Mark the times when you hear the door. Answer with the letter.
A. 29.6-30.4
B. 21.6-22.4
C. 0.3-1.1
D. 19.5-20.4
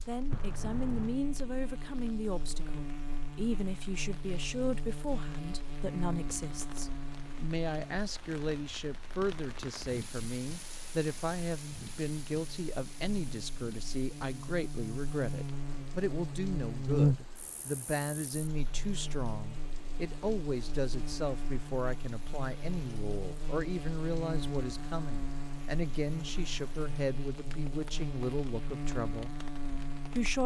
C.